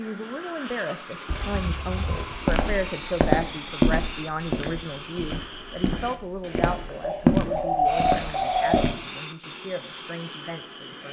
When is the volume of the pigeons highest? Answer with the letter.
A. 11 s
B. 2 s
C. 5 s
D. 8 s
D.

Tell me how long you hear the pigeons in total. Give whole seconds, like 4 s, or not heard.
4 s.